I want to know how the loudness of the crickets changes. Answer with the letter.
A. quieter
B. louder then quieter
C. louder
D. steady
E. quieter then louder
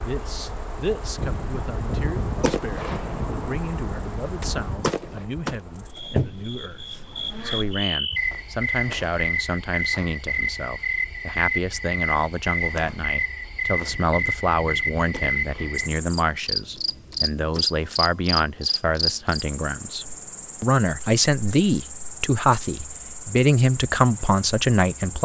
B.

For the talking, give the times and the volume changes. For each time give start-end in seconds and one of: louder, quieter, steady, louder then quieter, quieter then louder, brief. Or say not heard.
0.0-25.2 louder.